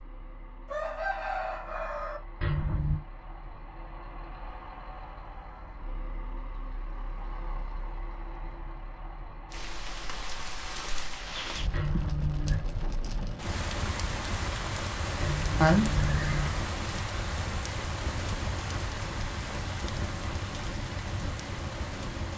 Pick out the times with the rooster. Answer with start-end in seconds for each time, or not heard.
0.7-2.2.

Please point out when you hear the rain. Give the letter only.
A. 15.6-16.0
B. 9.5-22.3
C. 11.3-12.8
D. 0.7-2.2
B.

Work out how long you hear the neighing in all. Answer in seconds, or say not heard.
3 s.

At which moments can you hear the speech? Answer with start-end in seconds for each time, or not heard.
15.6-16.0.